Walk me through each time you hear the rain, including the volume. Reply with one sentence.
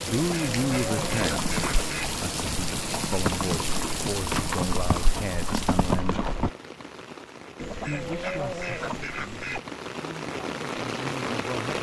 You can hear the rain from 0.0 to 11.7 s, getting quieter then louder.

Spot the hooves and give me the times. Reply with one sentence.
The hooves can be heard from 0.8 to 6.5 s.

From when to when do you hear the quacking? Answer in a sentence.
You can hear the quacking from 0.1 to 2.1 s and from 7.5 to 9.6 s.